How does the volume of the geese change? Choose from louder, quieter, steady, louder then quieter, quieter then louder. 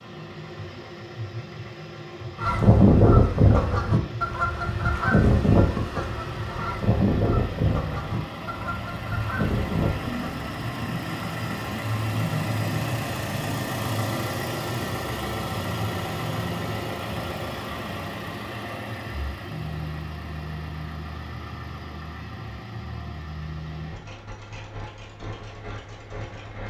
quieter.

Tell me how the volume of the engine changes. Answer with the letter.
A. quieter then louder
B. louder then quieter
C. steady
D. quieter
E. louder
B.